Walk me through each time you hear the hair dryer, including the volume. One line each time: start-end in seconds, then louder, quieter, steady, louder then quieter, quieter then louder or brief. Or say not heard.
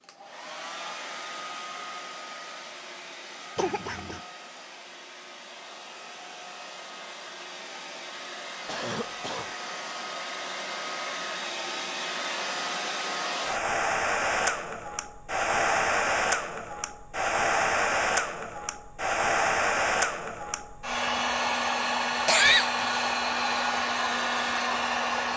0.0-25.3 louder.